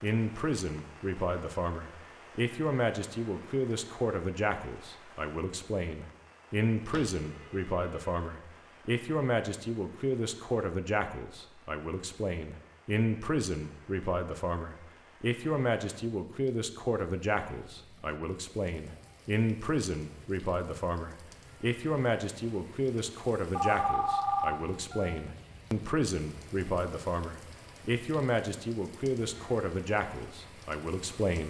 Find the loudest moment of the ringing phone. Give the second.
24 s.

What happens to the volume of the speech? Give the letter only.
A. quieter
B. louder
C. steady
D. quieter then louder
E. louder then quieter
C.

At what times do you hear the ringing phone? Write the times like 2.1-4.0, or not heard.
6.9-8.2, 23.6-25.1.